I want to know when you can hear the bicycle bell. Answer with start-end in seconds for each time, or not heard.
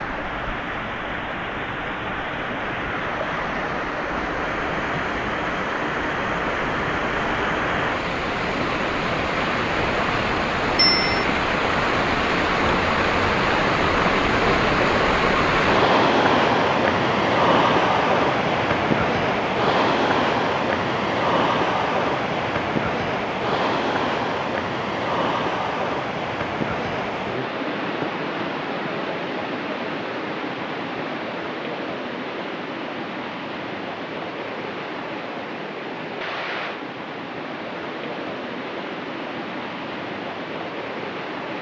10.8-11.2.